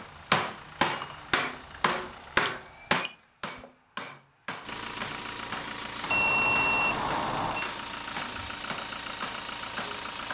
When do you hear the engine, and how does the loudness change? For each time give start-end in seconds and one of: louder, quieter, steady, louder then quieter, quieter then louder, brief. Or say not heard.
0.0-2.5 brief
4.6-10.3 steady.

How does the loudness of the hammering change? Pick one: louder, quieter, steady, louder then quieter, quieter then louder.
quieter.